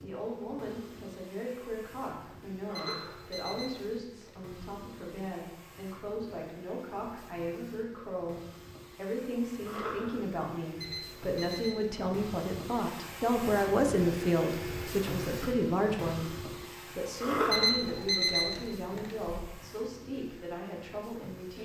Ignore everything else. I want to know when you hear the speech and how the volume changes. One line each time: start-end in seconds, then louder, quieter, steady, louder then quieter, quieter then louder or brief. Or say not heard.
0.0-21.6 louder then quieter.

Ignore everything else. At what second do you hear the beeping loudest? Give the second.
18 s.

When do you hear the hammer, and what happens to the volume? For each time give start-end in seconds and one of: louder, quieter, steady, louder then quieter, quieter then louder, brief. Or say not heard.
not heard.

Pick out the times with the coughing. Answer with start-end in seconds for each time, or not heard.
2.6-3.2, 9.6-10.2, 17.2-17.7.